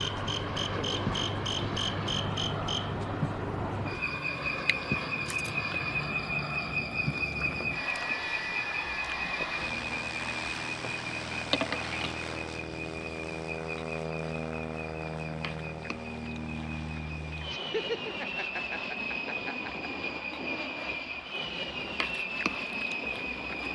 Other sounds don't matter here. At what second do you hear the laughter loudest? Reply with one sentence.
The volume of the laughter peaks at 18 seconds.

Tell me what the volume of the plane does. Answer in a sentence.
The volume of the plane stays about the same.